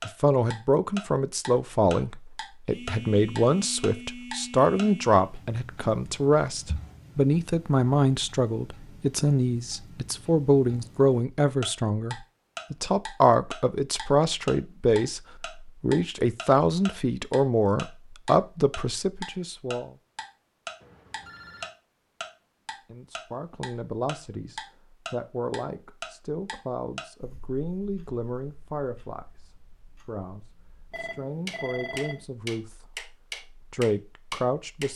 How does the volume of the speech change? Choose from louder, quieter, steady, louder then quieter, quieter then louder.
quieter.